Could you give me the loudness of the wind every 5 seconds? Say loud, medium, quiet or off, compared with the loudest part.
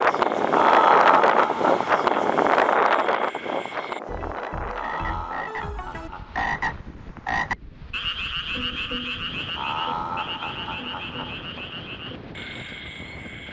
loud, quiet, quiet.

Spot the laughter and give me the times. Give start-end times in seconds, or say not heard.
0.5-2.1, 4.7-6.5, 9.6-11.3.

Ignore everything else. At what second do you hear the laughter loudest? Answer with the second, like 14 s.
1 s.